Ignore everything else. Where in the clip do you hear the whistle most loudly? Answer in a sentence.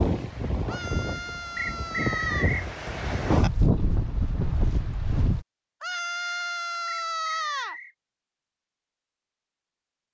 The loudest moment of the whistle is at 2 seconds.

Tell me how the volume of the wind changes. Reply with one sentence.
The volume of the wind goes up, then down.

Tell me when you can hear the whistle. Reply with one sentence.
You can hear the whistle from 1.6 to 2.6 s and from 6.8 to 8.0 s.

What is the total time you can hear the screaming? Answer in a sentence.
You can hear the screaming for 4 seconds altogether.